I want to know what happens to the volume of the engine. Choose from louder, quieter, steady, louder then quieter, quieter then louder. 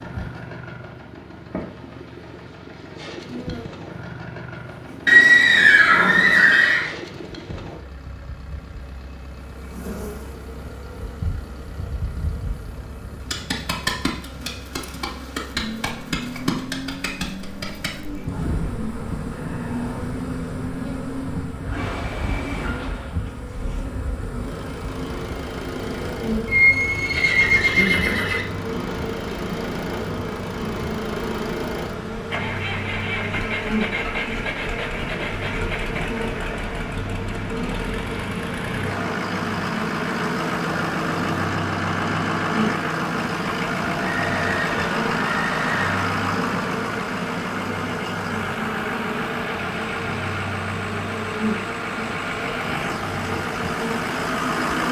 louder.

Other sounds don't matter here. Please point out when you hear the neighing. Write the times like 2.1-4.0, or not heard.
5.0-6.9, 26.4-28.4, 44.0-46.0.